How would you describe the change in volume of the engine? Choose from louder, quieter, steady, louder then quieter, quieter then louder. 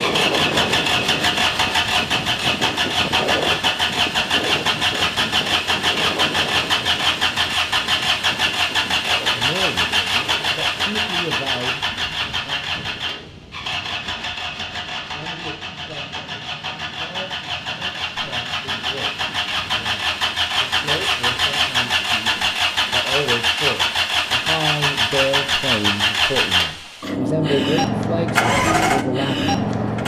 quieter then louder.